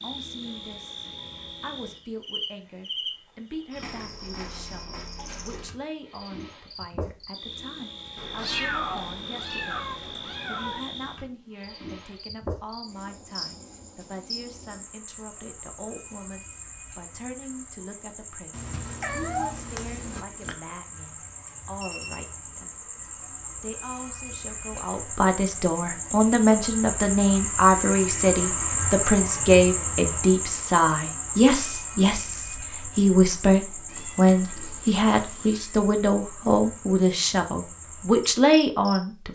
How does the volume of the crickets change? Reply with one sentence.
The loudness of the crickets goes up, then down.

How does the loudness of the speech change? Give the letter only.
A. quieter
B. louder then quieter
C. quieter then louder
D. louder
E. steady
D.